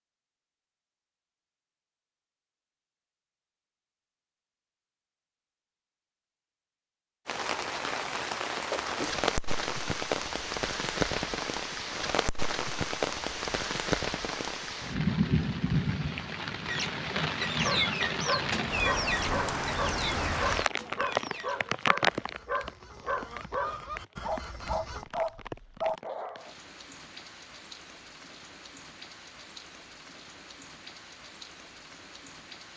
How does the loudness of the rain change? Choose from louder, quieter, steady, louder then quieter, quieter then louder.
quieter.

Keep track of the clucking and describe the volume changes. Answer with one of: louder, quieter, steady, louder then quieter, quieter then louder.
quieter then louder.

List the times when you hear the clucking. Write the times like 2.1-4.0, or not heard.
16.6-25.1.